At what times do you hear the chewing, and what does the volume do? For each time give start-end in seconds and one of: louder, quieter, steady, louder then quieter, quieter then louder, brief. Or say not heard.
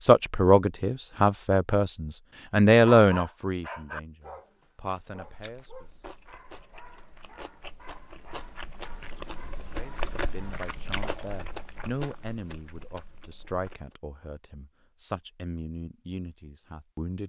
5.2-13.9 louder then quieter.